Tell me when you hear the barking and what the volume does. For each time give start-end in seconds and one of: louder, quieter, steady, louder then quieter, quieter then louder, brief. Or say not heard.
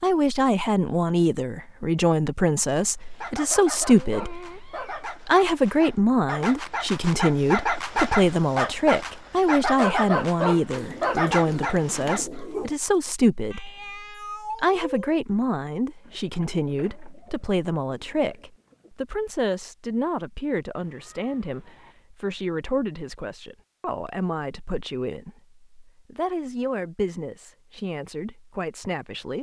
3.0-12.7 louder.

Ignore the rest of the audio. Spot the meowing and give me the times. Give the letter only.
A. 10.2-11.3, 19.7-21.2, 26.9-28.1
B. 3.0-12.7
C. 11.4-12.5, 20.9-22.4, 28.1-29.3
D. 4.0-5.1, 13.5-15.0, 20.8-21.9
D.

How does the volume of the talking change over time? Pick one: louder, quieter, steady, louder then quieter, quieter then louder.
quieter.